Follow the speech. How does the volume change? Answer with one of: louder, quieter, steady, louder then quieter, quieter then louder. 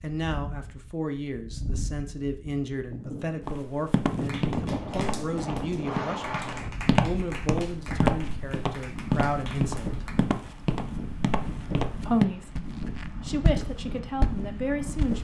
steady.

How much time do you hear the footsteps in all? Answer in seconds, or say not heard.
12 s.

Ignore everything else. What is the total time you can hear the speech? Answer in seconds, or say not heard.
13 s.